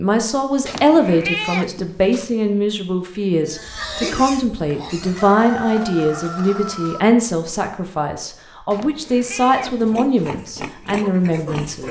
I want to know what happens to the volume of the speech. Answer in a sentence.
The volume of the speech stays about the same.